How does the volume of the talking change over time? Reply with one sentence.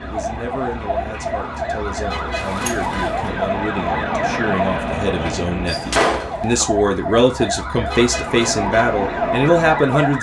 The loudness of the talking goes up.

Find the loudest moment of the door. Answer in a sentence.
The volume of the door peaks at 6 seconds.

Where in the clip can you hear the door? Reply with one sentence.
The door can be heard from 2.4 to 3.5 s and from 5.7 to 6.7 s.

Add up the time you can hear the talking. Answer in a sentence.
The talking can be heard for 10 seconds in total.